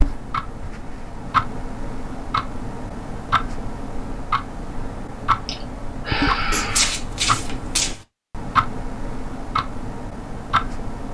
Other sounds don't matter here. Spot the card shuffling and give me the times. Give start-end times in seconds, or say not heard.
6.5-8.1.